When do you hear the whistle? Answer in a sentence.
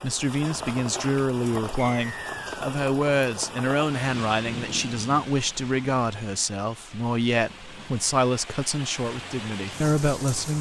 The whistle can be heard from 1.8 to 2.6 s.